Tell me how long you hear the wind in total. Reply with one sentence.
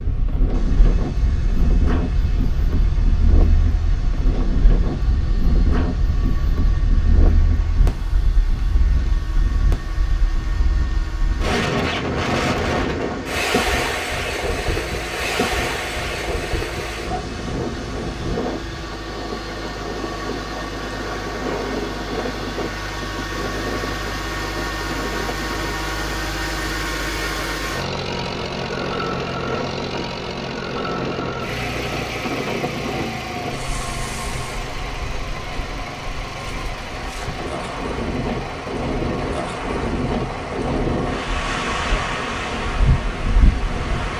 The wind can be heard for 44 seconds in total.